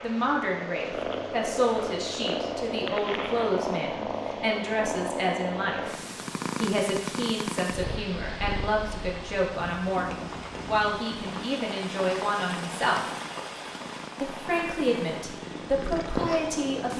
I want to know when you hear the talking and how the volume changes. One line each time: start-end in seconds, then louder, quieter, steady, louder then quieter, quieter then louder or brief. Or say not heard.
0.0-6.0 steady
6.6-13.1 steady
14.2-16.9 brief.